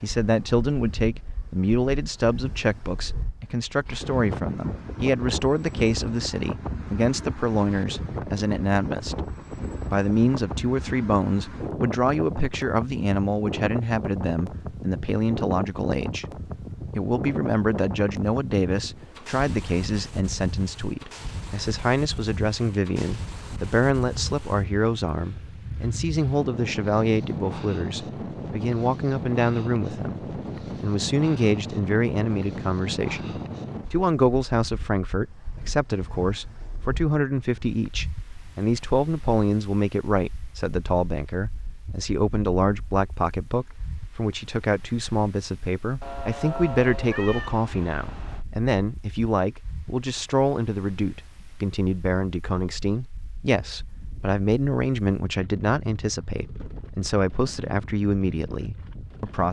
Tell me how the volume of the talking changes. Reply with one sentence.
The loudness of the talking stays about the same.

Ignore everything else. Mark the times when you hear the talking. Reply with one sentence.
You can hear the talking from 0.0 to 59.4 s.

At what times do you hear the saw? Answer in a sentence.
The saw can't be heard in this clip.